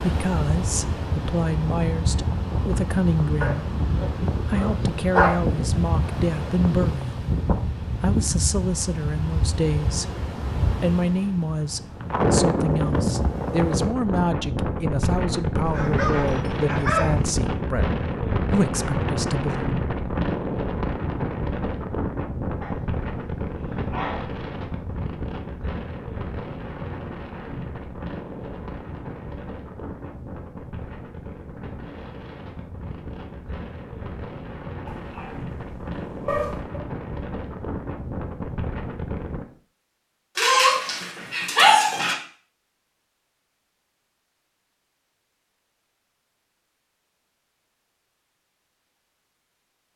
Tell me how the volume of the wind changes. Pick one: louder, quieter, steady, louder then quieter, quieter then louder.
quieter.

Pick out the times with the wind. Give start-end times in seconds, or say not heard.
0.0-39.5.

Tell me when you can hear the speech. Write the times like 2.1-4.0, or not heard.
0.0-3.6, 4.5-7.2, 8.0-19.7.